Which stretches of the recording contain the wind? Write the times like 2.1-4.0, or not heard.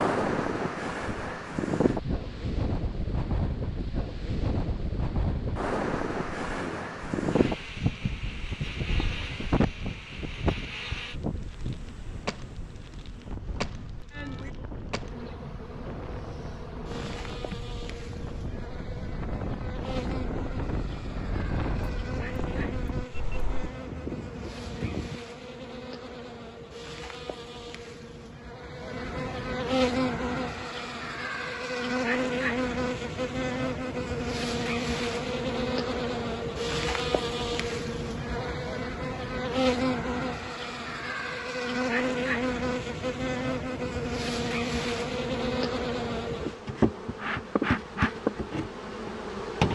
0.0-25.2.